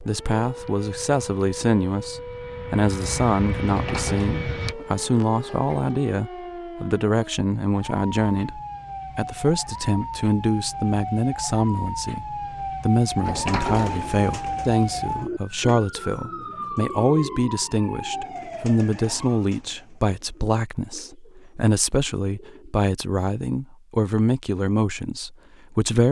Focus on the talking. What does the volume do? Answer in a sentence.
The loudness of the talking stays about the same.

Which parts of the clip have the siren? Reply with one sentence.
You can hear the siren from 0.0 to 19.4 s.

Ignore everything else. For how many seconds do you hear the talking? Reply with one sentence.
You can hear the talking for 26 seconds altogether.